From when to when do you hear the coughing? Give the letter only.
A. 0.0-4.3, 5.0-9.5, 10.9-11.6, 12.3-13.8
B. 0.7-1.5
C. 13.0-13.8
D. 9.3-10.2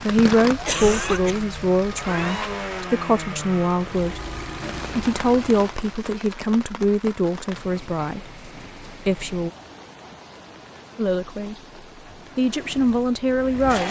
B.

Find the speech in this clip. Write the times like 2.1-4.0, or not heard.
0.0-4.3, 5.0-9.5, 10.9-11.6, 12.3-13.8.